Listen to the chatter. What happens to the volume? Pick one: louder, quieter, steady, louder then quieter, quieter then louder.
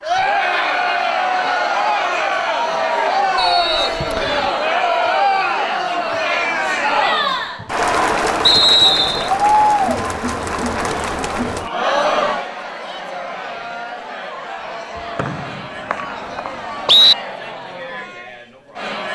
quieter.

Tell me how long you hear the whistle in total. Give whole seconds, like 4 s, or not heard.
4 s.